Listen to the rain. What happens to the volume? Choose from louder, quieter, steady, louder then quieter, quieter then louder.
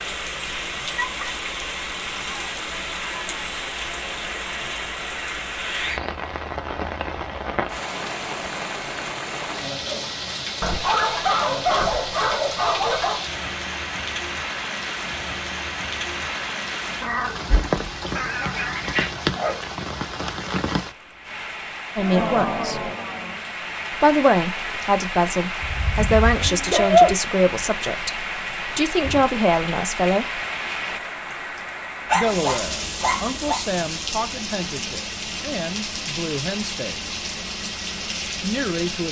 steady.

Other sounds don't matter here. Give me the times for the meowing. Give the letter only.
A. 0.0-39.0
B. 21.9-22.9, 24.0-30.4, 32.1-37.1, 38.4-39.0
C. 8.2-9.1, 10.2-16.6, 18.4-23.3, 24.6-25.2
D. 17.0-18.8
D.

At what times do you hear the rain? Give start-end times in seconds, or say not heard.
0.0-39.0.